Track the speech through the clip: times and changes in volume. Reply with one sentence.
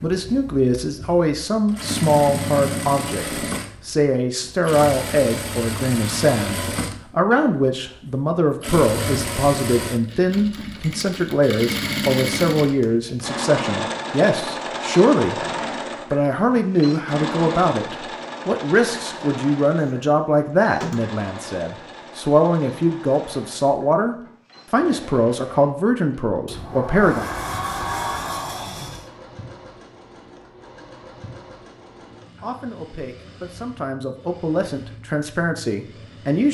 The speech can be heard from 0.0 to 27.3 s, at a steady volume; and from 32.4 to 36.4 s, getting louder.